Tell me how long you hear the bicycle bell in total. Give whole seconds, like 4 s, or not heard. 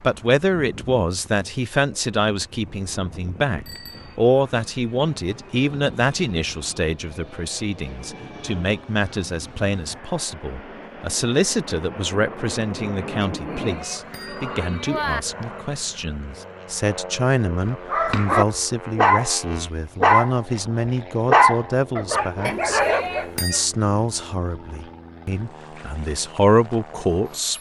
4 s.